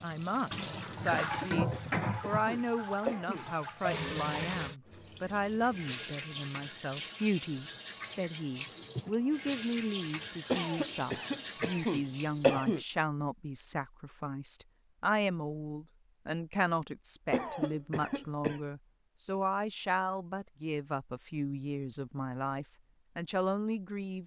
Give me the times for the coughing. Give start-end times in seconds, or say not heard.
1.1-3.5, 10.5-12.8, 17.3-18.6.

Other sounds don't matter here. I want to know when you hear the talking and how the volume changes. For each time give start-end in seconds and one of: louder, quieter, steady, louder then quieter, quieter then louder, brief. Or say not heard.
0.0-24.2 steady.